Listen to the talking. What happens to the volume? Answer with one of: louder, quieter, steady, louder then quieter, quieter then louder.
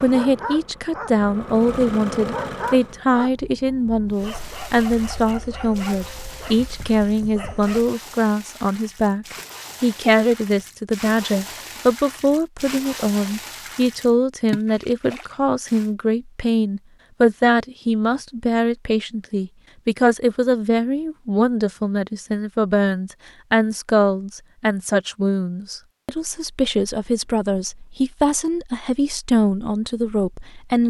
steady.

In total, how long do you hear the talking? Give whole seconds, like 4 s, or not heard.
31 s.